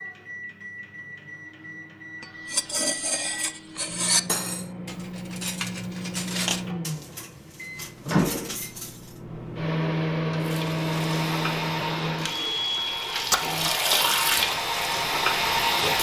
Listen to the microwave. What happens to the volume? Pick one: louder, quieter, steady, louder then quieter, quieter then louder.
louder.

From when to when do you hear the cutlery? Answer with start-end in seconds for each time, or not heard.
2.2-9.2.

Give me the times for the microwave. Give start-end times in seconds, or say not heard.
0.0-13.7.